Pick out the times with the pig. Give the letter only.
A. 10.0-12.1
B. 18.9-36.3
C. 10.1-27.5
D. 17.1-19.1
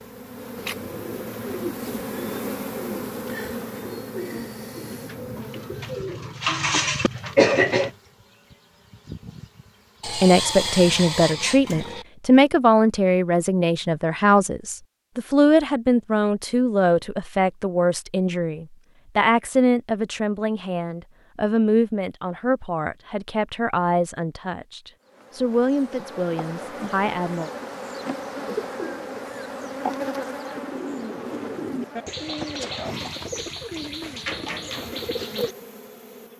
A.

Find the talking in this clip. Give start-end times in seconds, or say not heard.
10.1-27.5.